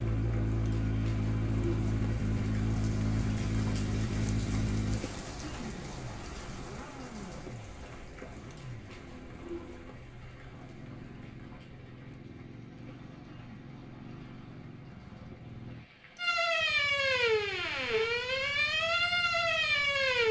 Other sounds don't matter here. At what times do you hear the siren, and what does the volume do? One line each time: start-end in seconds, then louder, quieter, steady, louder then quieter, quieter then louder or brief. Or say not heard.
16.1-20.2 steady.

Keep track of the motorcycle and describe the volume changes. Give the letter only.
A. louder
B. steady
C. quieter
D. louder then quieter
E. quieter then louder
C.